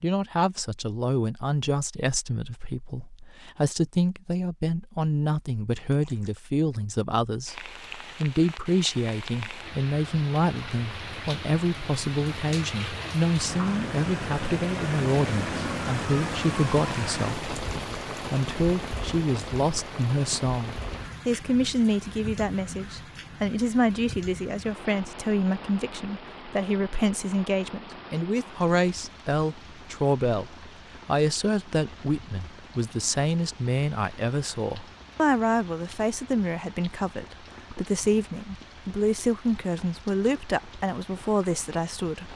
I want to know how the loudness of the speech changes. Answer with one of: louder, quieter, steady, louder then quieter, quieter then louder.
steady.